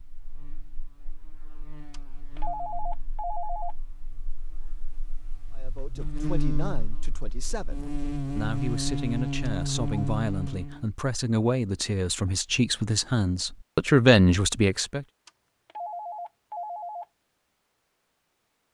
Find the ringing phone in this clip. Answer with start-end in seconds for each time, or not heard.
1.9-3.8, 9.4-10.1, 15.2-17.1.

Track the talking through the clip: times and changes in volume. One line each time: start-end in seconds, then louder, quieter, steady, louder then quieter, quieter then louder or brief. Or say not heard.
5.5-15.1 louder.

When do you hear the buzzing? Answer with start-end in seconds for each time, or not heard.
0.0-10.8.